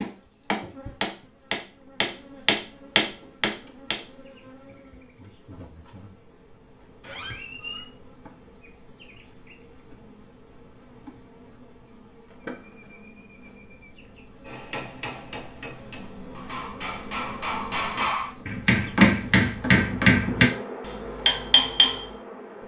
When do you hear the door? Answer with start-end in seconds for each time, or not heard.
7.0-7.9, 12.3-12.9.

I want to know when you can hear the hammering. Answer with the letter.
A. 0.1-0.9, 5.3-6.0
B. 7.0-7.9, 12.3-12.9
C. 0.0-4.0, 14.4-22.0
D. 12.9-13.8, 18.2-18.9
C.